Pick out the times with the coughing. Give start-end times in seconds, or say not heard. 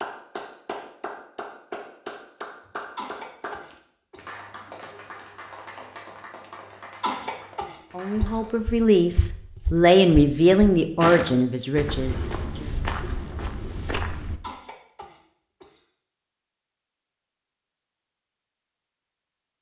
3.0-4.3, 7.0-8.4, 14.4-15.8.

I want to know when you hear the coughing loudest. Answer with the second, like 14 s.
7 s.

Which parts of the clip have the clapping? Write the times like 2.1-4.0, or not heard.
0.0-8.7.